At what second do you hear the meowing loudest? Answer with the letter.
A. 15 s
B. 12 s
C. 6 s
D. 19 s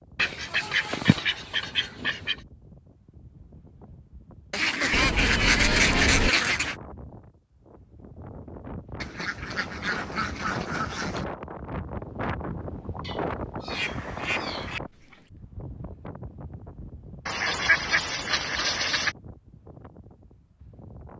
C.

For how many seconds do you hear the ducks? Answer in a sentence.
The ducks can be heard for 10 seconds in total.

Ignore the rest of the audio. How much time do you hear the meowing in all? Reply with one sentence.
You can hear the meowing for 4 seconds altogether.